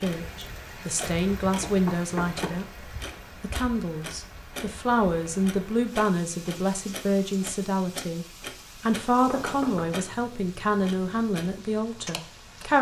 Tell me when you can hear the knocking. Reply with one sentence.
You can hear the knocking from 1.0 to 2.5 s and from 9.2 to 10.1 s.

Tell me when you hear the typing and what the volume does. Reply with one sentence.
You can't hear the typing here.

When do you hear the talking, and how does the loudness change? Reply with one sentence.
You can hear the talking from 0.0 to 12.7 s, at a steady volume.